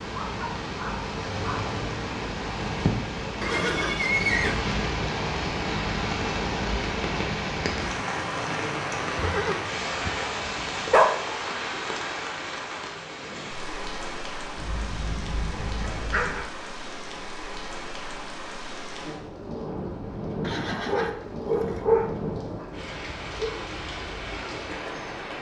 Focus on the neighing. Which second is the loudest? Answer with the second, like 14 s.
4 s.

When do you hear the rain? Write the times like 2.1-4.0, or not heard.
0.0-25.3.